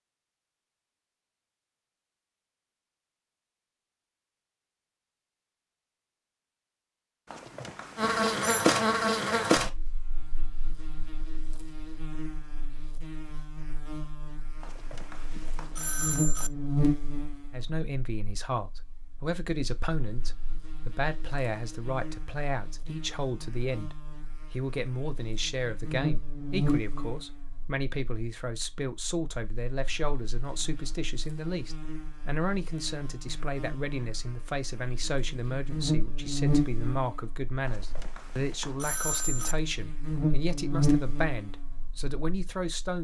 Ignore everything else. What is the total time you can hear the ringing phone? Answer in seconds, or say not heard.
5 s.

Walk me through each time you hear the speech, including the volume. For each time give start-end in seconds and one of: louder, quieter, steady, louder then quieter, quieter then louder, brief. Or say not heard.
17.5-42.9 steady.